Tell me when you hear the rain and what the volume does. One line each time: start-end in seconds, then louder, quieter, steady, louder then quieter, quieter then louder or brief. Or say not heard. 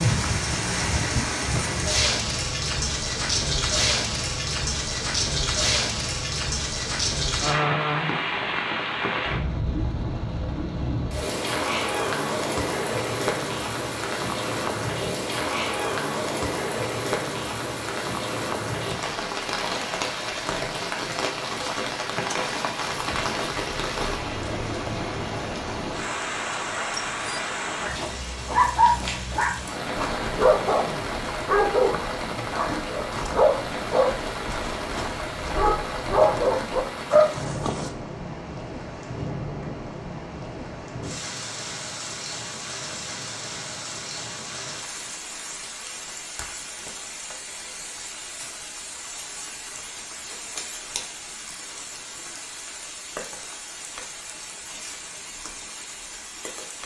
0.0-56.8 quieter.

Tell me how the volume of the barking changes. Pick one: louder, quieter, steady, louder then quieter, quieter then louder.
quieter then louder.